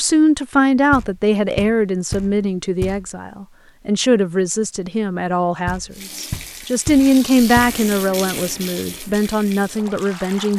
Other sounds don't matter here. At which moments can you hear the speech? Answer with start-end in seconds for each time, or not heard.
0.0-10.5.